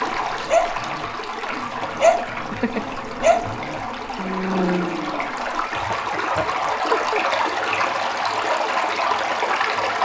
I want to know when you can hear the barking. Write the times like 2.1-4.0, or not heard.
0.0-5.3.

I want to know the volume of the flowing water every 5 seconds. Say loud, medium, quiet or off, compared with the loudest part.
medium, loud.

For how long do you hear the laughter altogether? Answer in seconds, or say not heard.
2 s.